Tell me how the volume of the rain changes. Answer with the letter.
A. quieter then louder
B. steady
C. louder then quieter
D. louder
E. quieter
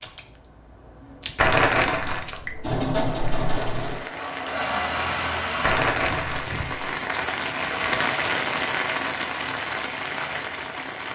D.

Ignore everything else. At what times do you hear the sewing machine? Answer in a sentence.
The sewing machine can be heard from 2.6 to 5.8 s.